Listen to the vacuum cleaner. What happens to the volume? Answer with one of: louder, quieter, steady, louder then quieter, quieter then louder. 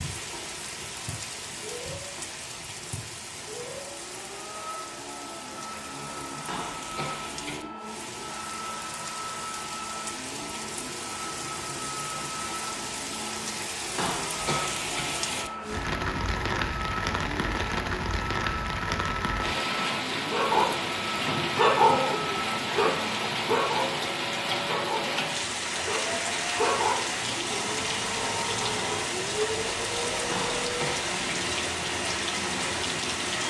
louder.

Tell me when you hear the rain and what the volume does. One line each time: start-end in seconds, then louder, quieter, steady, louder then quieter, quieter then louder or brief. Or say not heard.
0.0-33.4 louder.